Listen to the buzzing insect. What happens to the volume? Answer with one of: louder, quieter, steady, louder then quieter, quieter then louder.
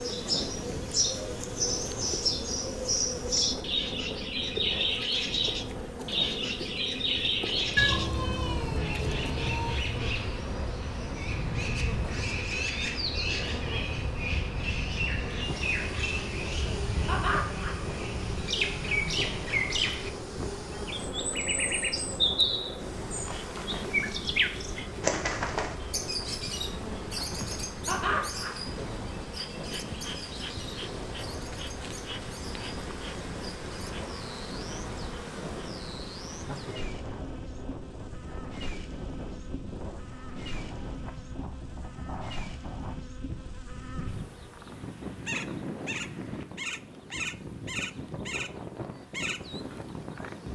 steady.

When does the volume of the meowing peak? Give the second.
8 s.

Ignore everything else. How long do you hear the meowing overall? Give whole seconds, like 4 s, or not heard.
2 s.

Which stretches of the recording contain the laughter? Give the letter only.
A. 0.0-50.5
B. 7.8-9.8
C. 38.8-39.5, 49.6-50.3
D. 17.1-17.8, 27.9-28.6
D.